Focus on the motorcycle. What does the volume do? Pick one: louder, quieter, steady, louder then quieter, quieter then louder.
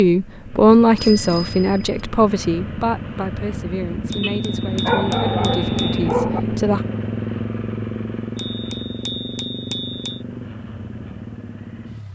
louder then quieter.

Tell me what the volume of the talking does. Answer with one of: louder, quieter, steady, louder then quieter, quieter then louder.
quieter.